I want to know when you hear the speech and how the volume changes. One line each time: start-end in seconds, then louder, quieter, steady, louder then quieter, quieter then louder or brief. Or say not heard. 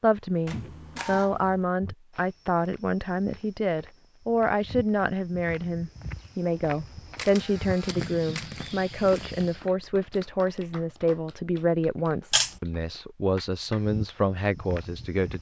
0.0-15.3 steady.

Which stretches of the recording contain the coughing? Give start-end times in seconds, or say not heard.
not heard.